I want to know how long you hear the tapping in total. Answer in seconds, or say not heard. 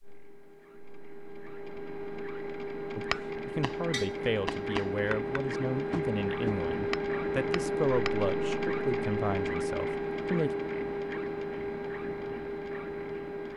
5 s.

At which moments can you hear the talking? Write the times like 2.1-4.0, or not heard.
3.0-10.6.